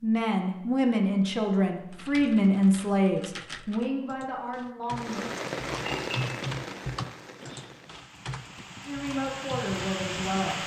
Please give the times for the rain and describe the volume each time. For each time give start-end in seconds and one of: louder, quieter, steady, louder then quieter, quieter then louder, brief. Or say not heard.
4.9-10.6 quieter then louder.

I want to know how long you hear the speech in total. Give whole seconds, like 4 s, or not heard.
7 s.